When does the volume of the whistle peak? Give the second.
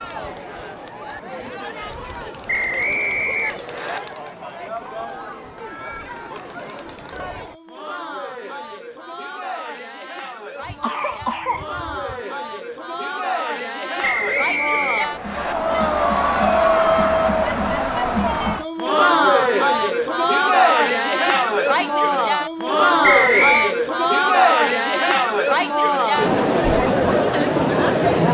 23 s.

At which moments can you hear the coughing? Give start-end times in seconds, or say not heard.
10.6-12.2.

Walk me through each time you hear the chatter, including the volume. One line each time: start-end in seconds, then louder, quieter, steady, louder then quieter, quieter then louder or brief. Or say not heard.
0.0-28.2 louder.